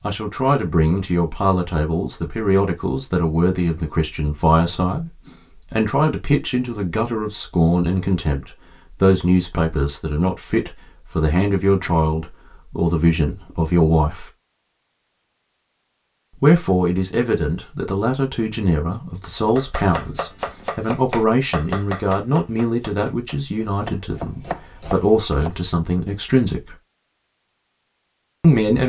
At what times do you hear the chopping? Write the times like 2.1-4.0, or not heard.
19.4-25.6.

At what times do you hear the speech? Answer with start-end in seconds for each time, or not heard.
0.0-14.3, 16.4-26.8, 28.4-28.8.